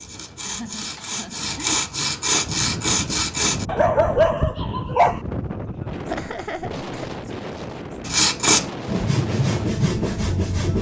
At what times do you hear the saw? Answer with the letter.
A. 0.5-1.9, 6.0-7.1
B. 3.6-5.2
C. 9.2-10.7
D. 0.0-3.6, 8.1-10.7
D.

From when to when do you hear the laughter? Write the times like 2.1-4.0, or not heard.
0.5-1.9, 6.0-7.1.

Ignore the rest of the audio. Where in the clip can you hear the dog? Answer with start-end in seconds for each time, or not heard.
3.6-5.2.